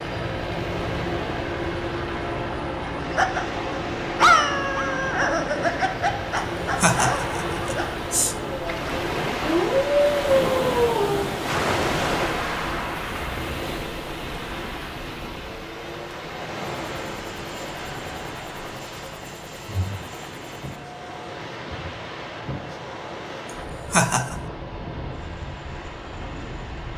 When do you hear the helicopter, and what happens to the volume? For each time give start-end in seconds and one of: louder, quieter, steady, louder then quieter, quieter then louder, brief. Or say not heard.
0.0-26.9 quieter.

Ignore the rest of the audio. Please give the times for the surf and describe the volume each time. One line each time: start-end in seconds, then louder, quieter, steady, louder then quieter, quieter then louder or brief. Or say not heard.
0.1-26.9 louder then quieter.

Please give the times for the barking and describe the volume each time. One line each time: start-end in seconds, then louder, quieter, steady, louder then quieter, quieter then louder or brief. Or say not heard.
2.9-11.4 quieter then louder.